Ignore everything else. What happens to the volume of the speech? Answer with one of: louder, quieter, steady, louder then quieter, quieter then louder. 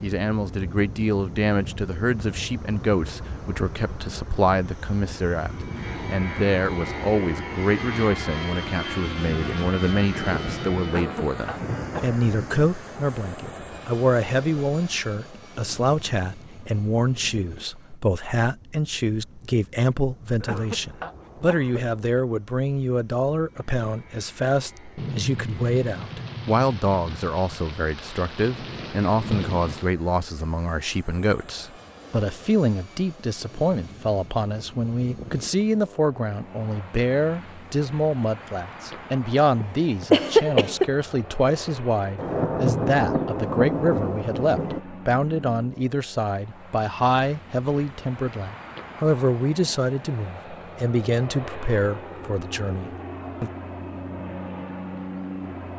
steady.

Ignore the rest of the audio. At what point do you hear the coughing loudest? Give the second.
40 s.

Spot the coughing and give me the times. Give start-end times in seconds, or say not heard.
10.8-12.2, 20.4-22.2, 39.6-40.9.